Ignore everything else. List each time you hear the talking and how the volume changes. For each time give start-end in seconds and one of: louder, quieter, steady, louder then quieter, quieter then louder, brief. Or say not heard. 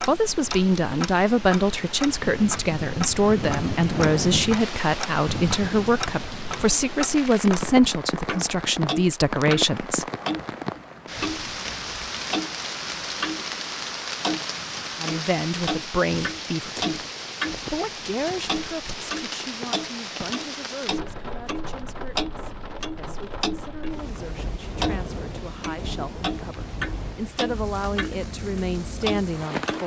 0.1-10.1 steady
14.9-17.0 brief
17.6-29.8 quieter then louder.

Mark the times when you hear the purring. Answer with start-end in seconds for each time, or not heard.
not heard.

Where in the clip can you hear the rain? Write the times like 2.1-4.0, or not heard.
0.0-29.8.